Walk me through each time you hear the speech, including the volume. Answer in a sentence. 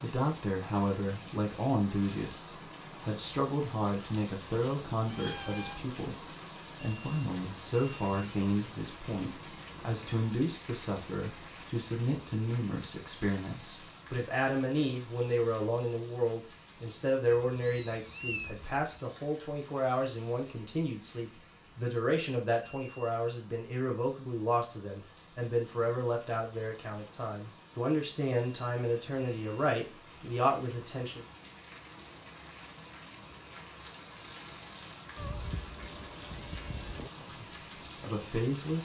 The speech can be heard from 0.0 to 6.2 s, at a steady volume; from 6.8 to 31.2 s, at a steady volume; and briefly from 37.1 to 38.8 s.